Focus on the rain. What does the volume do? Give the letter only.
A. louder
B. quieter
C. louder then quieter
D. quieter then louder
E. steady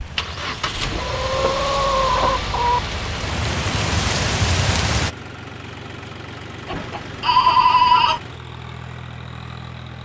A.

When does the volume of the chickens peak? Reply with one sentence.
The loudest moment of the chickens is at 2 seconds.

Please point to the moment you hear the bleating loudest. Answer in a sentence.
The volume of the bleating peaks at 8 seconds.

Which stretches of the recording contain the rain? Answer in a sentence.
The rain can be heard from 0.0 to 5.2 s.